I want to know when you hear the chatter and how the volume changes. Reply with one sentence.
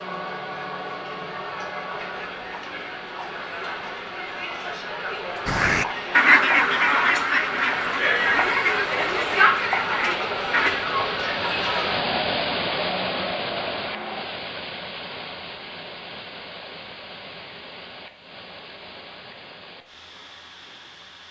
You can hear the chatter from 0.0 to 14.3 s, getting louder then quieter.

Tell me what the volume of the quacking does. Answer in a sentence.
The loudness of the quacking goes down.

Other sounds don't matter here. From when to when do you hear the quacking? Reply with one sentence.
The quacking can be heard from 5.5 to 10.7 s.